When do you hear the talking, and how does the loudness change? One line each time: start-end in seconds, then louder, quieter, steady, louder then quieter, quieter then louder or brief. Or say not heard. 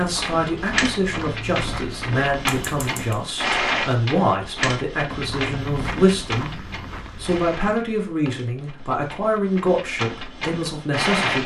0.0-11.4 steady.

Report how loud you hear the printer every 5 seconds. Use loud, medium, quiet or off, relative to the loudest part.
loud, medium, loud.